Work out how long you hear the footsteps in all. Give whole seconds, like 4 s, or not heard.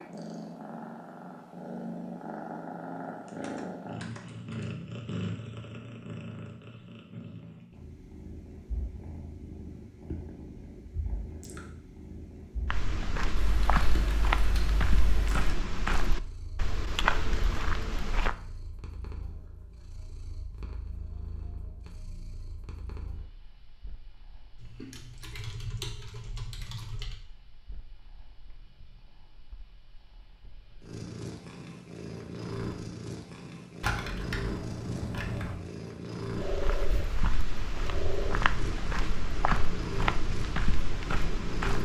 11 s.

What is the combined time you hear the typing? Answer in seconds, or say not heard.
8 s.